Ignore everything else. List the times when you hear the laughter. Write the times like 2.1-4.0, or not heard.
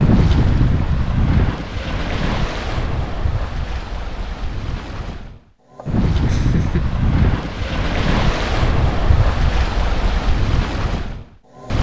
5.8-6.8.